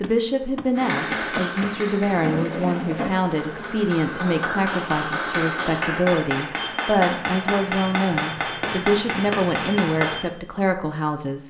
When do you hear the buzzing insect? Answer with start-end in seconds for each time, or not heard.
0.0-4.1.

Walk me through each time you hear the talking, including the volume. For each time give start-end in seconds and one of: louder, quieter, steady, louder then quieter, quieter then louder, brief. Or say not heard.
0.0-11.4 steady.